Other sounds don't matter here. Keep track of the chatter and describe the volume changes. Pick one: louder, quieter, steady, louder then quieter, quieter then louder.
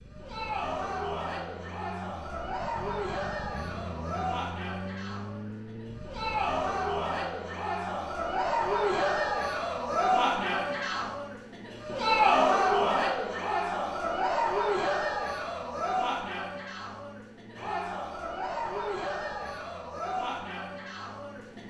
louder then quieter.